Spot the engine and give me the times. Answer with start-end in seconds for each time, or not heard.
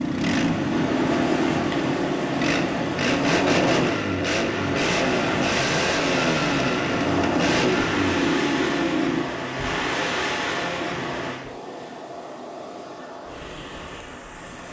0.0-9.2.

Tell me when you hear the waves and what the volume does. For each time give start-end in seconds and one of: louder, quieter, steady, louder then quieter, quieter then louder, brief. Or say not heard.
0.0-14.6 quieter.